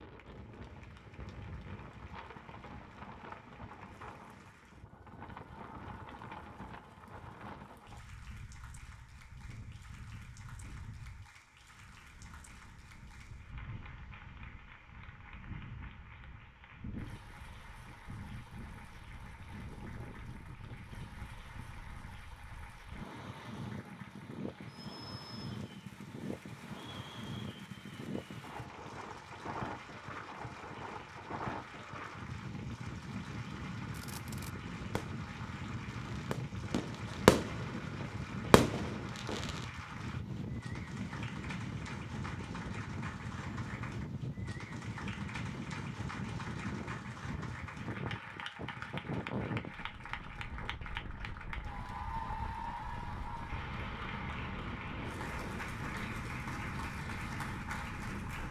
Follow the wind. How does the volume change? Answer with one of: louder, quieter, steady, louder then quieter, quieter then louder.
louder.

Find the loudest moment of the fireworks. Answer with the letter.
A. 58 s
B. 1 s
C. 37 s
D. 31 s
C.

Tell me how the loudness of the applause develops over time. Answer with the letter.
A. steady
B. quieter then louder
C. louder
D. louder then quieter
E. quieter
C.